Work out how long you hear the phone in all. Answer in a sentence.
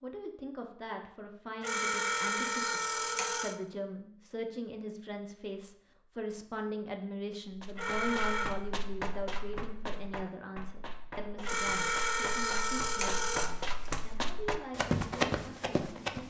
You can hear the phone for 5 seconds altogether.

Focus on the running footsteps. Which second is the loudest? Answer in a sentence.
The volume of the running footsteps peaks at 15 seconds.